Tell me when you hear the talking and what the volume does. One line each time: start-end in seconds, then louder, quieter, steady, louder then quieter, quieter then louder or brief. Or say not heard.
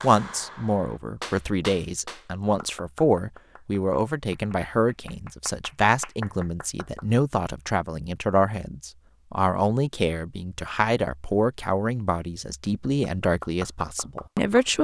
0.0-14.7 steady.